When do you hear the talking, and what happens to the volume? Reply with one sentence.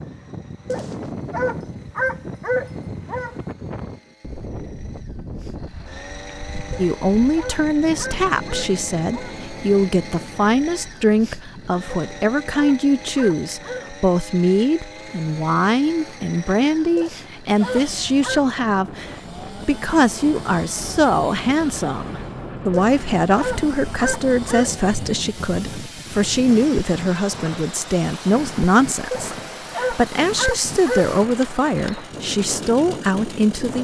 You can hear the talking from 6.8 to 33.7 s, at a steady volume.